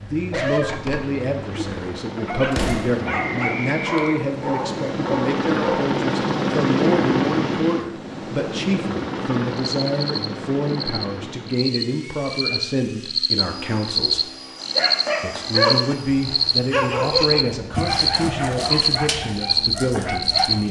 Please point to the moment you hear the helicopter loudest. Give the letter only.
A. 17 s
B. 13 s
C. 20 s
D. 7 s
D.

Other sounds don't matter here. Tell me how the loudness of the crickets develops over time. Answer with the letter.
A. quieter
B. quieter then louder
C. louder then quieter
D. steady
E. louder
E.